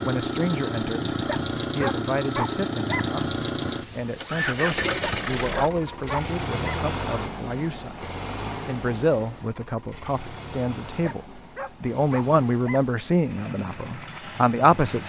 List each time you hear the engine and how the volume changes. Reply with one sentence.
The engine can be heard from 0.0 to 15.0 s, getting quieter.